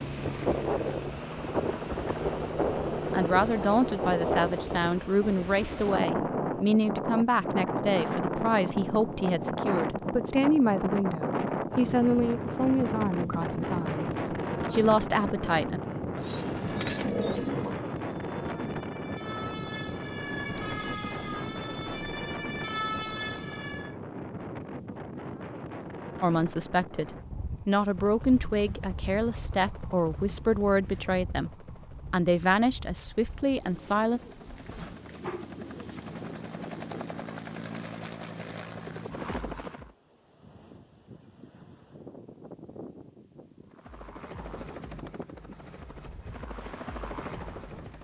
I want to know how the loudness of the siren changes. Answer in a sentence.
The volume of the siren goes up.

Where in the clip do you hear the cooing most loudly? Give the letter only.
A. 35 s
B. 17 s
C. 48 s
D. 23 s
B.